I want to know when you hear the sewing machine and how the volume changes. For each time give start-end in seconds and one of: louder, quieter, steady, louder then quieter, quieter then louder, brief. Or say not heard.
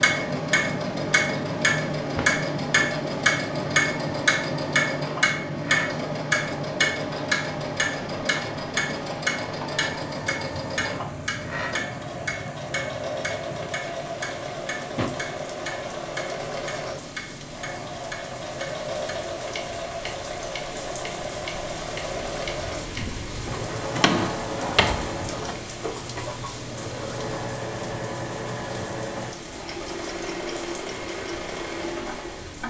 0.0-32.6 steady.